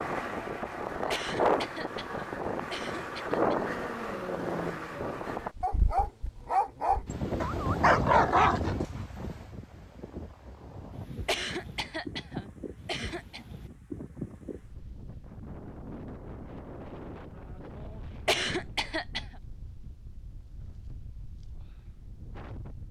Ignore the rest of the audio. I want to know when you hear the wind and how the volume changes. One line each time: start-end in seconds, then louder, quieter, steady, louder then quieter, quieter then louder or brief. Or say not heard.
0.0-22.8 quieter.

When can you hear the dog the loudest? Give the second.
8 s.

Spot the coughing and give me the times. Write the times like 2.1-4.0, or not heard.
1.1-3.5, 11.2-13.4, 18.2-19.2.